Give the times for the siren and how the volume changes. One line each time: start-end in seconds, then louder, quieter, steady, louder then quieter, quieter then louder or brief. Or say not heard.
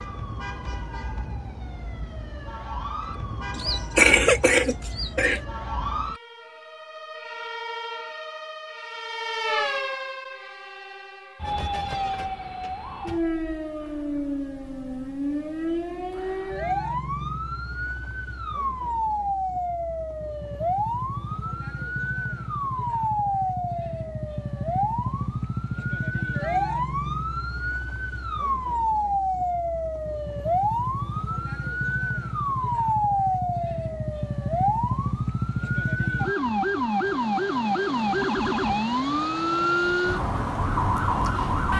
0.0-41.7 louder.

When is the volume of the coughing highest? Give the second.
4 s.